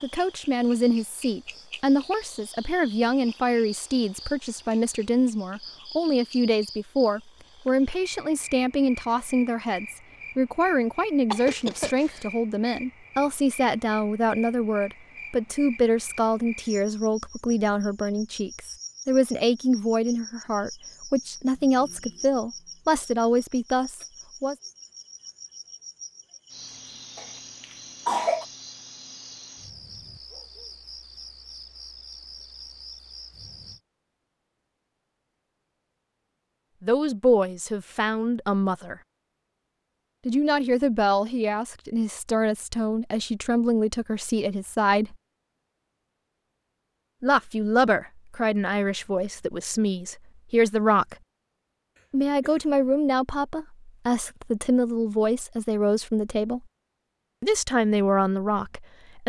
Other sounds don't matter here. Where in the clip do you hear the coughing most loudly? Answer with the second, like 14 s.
28 s.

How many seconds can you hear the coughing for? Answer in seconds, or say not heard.
3 s.